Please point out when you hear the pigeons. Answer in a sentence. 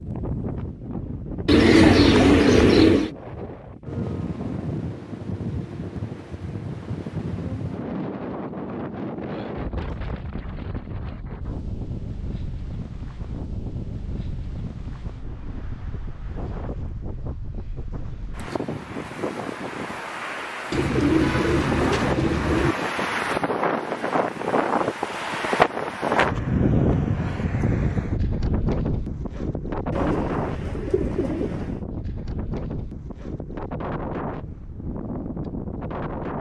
You can hear the pigeons from 1.4 to 3.1 s, from 20.7 to 22.8 s and from 29.9 to 31.8 s.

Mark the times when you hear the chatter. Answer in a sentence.
You can't hear the chatter here.